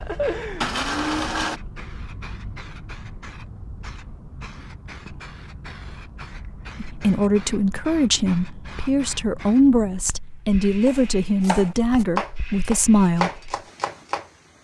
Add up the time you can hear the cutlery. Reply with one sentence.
The cutlery can't be heard in this clip.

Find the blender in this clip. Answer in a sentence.
You can hear the blender from 0.0 to 1.6 s.